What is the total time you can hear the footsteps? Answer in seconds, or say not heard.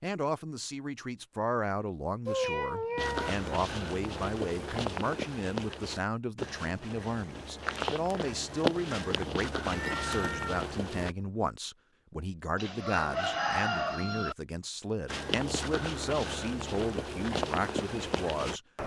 12 s.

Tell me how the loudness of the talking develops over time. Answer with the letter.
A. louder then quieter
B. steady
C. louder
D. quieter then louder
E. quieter
B.